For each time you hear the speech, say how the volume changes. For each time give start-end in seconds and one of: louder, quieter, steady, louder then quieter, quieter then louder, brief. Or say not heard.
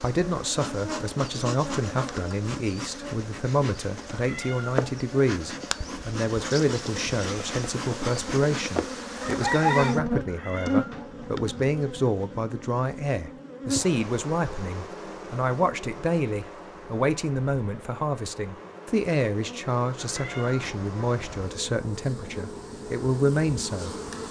0.0-23.9 steady.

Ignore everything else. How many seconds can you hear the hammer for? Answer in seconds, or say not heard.
not heard.